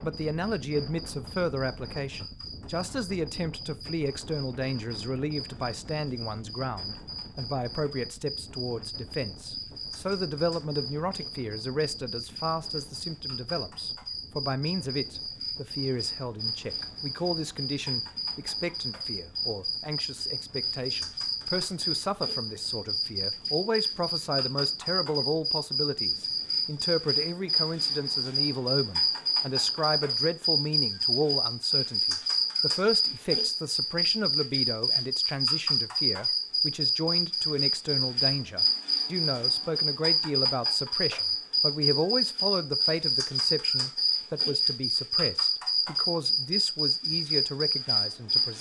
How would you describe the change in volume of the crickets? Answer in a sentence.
The volume of the crickets goes up.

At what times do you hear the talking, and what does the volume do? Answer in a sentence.
You can hear the talking from 0.0 to 48.5 s, at a steady volume.